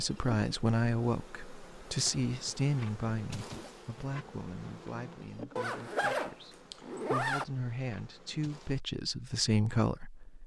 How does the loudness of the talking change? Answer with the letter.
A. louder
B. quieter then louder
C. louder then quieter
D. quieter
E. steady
B.